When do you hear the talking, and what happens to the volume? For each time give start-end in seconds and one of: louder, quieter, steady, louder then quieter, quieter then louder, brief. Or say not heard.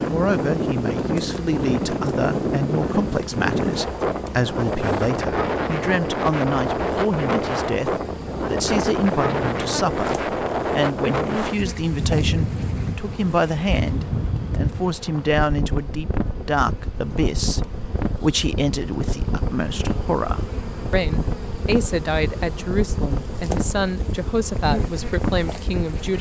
0.1-26.1 steady.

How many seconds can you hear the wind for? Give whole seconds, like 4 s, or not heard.
26 s.